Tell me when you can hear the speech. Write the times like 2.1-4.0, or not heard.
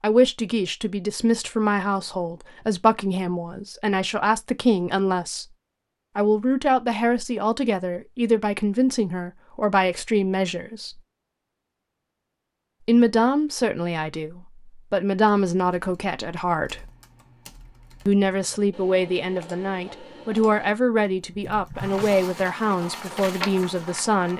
0.0-5.5, 6.2-11.0, 12.8-16.9, 18.1-24.3.